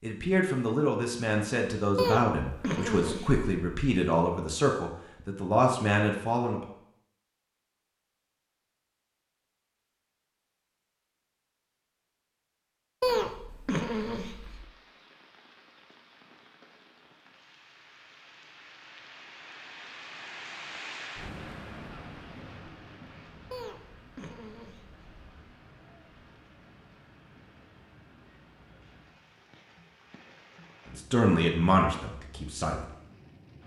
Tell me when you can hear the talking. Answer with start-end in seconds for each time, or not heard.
0.0-6.6, 30.9-32.9.